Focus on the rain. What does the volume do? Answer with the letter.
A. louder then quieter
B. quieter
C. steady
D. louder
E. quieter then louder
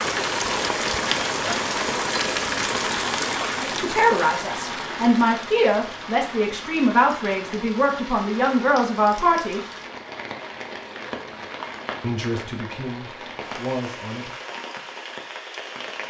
B.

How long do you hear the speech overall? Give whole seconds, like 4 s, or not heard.
8 s.